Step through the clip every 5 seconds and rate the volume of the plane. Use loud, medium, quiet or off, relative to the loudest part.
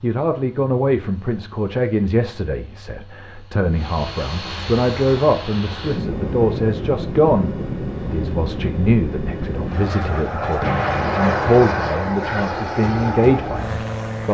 quiet, loud, loud.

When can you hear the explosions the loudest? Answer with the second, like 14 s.
11 s.